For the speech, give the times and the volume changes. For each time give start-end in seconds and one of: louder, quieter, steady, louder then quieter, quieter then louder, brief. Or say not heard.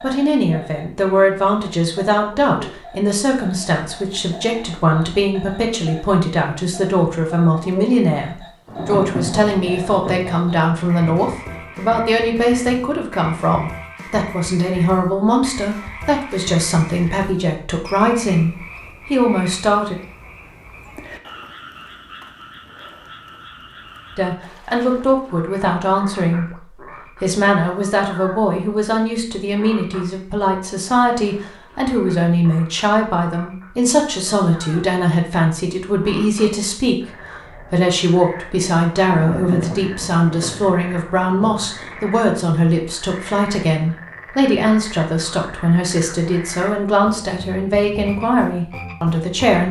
0.0-19.9 steady
24.1-49.6 steady.